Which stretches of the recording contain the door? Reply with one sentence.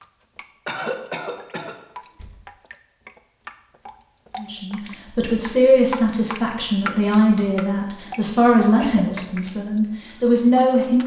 The door can be heard from 2.0 to 2.5 s.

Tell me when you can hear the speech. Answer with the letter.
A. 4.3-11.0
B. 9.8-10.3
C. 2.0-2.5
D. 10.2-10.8
A.